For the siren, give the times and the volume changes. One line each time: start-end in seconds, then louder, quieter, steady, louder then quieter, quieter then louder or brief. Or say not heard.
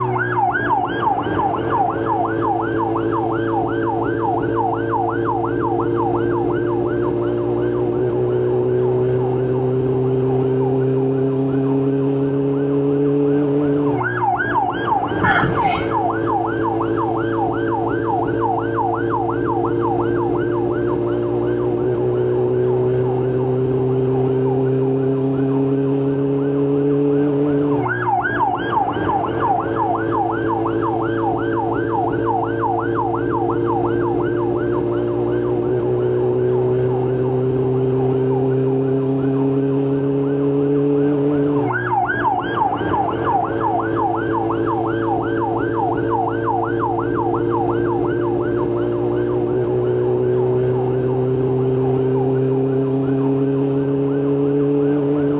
0.0-55.3 steady.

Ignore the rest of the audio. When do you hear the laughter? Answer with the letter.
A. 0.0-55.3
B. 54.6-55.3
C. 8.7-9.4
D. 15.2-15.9
D.